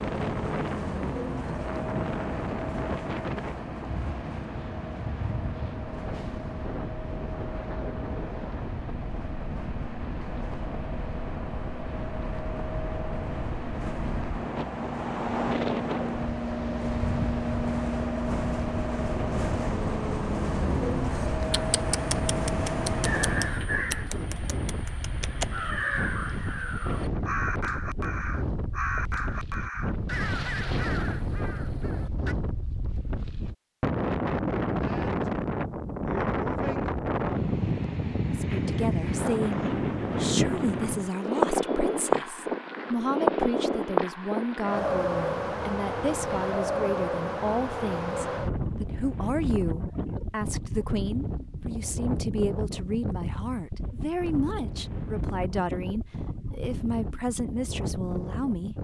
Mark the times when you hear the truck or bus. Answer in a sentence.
You can hear the truck or bus from 0.0 to 23.6 s.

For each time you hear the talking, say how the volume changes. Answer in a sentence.
You can hear the talking from 38.3 to 58.8 s, at a steady volume.